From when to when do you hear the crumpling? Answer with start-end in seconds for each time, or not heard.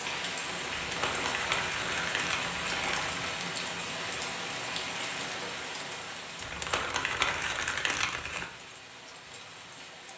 0.7-3.4, 6.4-8.4.